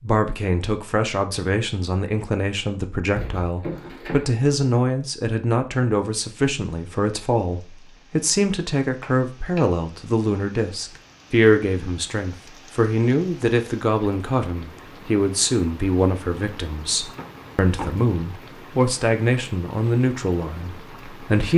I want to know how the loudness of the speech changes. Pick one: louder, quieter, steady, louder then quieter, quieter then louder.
steady.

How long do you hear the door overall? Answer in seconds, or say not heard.
3 s.